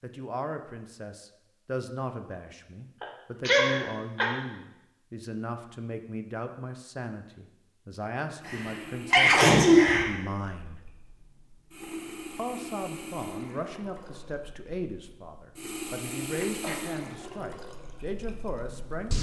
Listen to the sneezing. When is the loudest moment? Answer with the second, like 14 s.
10 s.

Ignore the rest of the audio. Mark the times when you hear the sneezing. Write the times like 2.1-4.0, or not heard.
3.0-4.3, 8.4-10.1, 16.4-16.9.